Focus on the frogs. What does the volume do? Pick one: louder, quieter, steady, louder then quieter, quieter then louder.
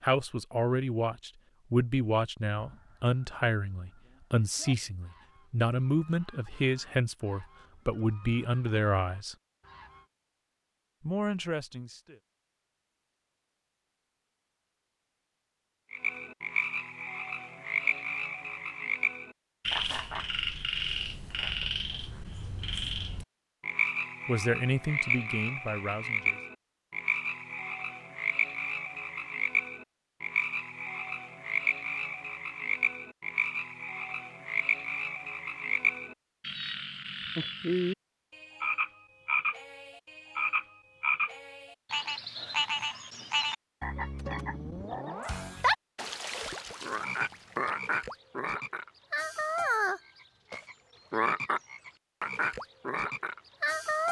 steady.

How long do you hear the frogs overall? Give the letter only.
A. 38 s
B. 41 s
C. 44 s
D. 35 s
A.